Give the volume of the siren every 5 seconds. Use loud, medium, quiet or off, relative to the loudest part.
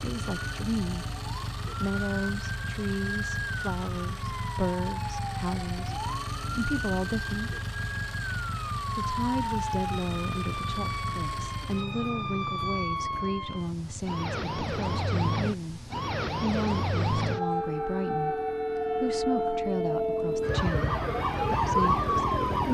medium, medium, medium, loud, loud.